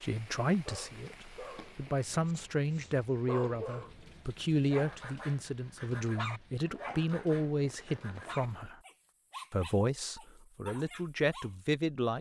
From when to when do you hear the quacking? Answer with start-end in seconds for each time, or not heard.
not heard.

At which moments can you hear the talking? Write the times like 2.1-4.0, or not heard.
0.0-8.8, 9.5-12.1.